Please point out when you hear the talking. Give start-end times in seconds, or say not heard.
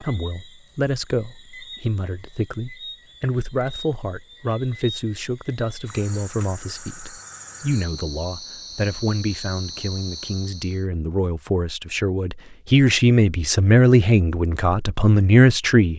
0.0-15.9.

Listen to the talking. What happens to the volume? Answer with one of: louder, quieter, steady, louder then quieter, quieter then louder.
louder.